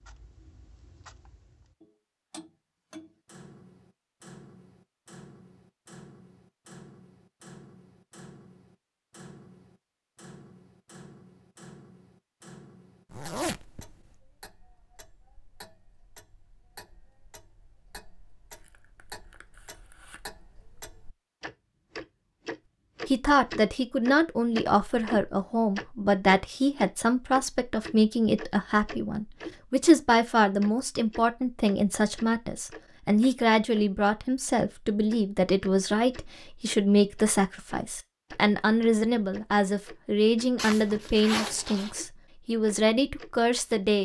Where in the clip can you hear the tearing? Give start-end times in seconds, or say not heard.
18.5-20.2.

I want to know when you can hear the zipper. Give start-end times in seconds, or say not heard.
13.1-13.9, 40.5-42.0.